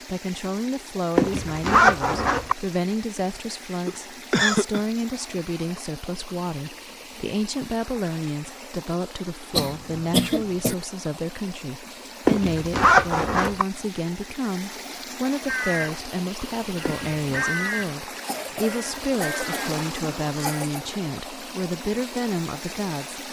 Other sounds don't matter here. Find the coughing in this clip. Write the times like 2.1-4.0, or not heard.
3.9-4.8, 9.5-10.8, 18.2-20.9.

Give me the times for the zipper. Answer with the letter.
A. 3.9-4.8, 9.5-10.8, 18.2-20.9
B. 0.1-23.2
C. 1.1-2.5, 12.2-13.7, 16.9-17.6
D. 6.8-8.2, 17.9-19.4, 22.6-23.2
C.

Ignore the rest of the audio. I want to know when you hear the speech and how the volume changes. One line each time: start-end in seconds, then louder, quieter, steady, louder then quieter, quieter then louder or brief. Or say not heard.
0.1-23.2 steady.